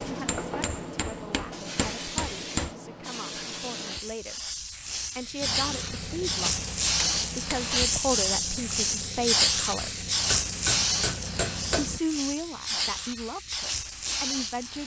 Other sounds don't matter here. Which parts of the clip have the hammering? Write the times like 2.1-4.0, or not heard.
0.0-2.8, 6.5-7.8, 10.3-11.9.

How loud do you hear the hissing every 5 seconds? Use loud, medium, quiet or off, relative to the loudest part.
medium, loud, loud.